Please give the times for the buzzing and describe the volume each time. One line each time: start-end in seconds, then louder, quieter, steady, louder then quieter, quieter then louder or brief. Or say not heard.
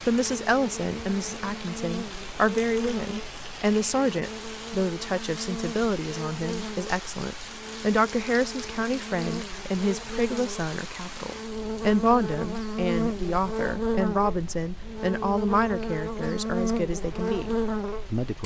0.1-18.4 louder.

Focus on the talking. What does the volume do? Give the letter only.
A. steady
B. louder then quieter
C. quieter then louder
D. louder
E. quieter
A.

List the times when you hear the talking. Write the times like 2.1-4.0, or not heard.
0.0-18.4.